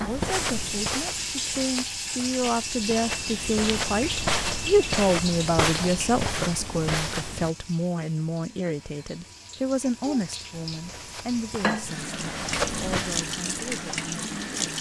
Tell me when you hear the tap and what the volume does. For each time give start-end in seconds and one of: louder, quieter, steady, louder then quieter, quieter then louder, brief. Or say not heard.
0.0-14.7 quieter then louder.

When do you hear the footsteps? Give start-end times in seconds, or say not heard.
0.0-7.5, 10.7-14.7.